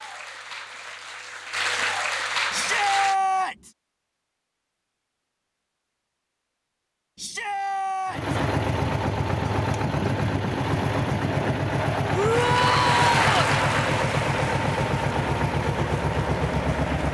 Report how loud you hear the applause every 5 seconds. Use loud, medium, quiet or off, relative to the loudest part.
loud, off, loud, quiet.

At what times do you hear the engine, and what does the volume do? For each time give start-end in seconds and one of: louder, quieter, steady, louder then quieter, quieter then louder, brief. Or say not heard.
8.1-17.0 steady.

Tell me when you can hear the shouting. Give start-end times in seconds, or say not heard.
2.5-3.7, 7.2-8.3, 12.1-13.4.